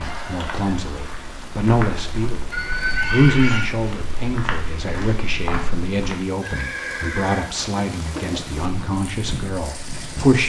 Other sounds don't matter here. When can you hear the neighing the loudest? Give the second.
3 s.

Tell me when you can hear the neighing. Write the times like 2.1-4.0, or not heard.
2.5-3.6, 6.4-7.5.